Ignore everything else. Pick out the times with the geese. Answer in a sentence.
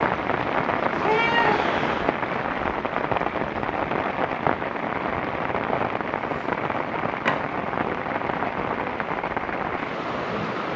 You can't hear the geese here.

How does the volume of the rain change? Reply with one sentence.
The loudness of the rain stays about the same.